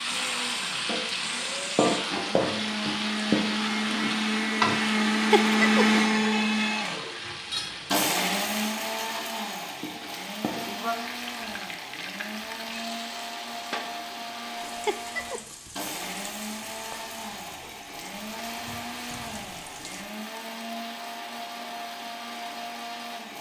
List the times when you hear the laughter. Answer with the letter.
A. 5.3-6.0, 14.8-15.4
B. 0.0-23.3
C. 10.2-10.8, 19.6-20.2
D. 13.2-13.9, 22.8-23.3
A.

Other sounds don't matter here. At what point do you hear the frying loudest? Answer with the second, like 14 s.
2 s.